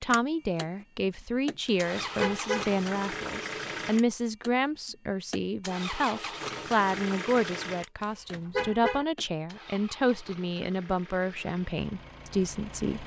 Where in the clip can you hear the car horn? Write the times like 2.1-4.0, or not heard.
1.6-2.7, 8.0-9.1.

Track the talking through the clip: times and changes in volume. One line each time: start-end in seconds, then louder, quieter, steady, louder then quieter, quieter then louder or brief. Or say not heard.
0.0-13.0 steady.